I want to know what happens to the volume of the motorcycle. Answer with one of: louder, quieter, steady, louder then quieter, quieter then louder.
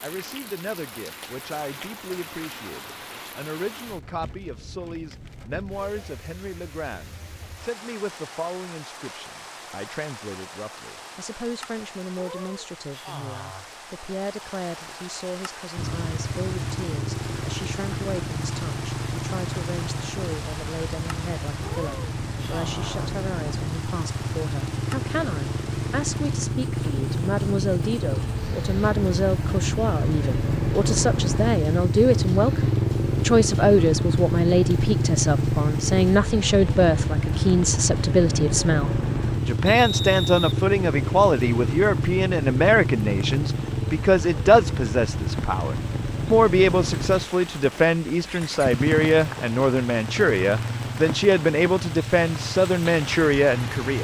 louder then quieter.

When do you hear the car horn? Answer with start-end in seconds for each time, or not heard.
not heard.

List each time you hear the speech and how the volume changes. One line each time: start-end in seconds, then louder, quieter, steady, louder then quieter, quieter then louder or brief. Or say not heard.
0.0-53.9 louder.